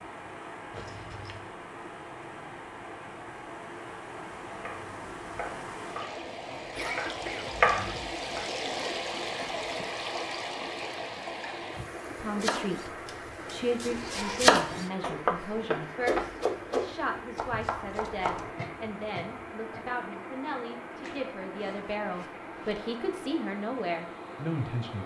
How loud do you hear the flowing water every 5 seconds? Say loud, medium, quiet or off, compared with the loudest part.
medium, loud, loud, medium, medium.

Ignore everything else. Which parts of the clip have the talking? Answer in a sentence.
The talking can be heard from 12.1 to 25.0 s.